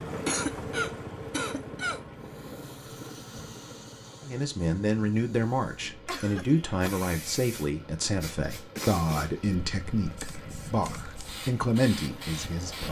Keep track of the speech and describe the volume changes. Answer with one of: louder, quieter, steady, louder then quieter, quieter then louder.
steady.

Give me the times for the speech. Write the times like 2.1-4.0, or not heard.
4.2-12.8.